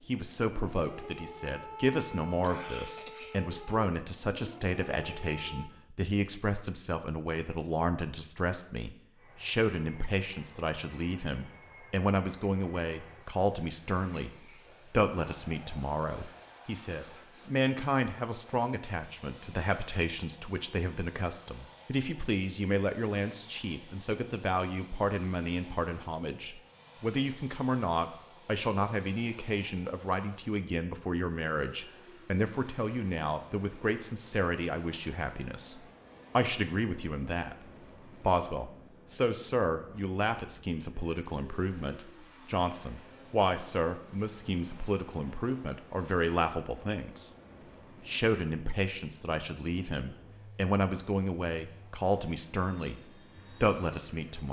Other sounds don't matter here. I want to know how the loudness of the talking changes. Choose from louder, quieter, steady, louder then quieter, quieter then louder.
steady.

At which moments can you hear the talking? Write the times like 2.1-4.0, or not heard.
0.1-47.3, 48.0-54.4.